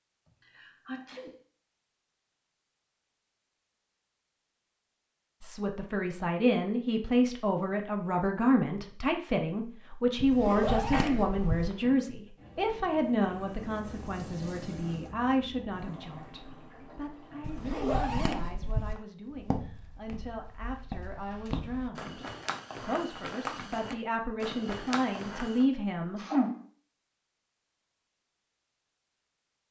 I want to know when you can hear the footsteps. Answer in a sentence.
The footsteps can be heard from 19.3 to 25.6 s.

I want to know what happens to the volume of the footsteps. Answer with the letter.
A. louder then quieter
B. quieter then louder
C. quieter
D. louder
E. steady
D.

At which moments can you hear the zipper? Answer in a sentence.
The zipper can be heard from 10.2 to 11.8 s and from 17.4 to 19.1 s.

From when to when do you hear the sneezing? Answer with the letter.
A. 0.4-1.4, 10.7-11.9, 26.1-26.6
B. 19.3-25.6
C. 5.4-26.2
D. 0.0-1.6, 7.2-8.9
A.